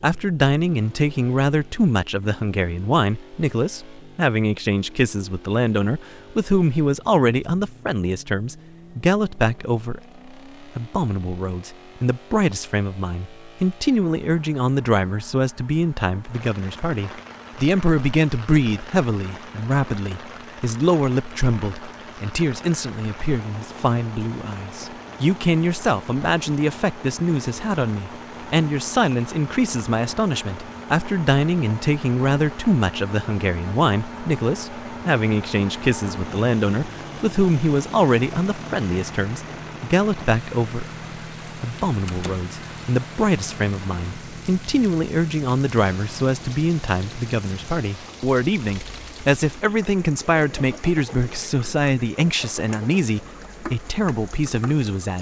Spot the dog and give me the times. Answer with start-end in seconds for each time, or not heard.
not heard.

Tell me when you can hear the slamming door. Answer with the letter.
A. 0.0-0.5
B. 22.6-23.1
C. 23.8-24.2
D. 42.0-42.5
D.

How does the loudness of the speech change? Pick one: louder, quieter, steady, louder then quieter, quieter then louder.
steady.